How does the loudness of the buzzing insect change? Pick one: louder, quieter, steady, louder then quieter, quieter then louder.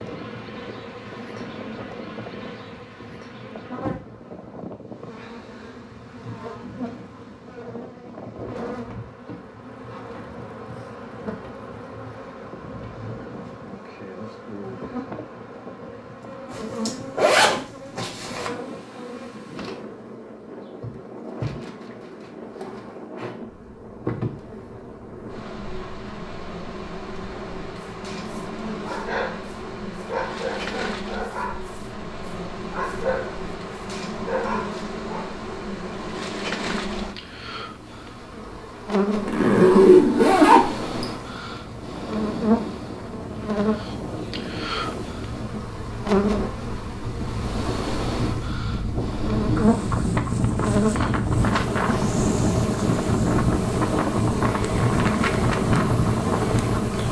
louder.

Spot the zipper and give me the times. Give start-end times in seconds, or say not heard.
16.5-18.5, 39.1-40.9.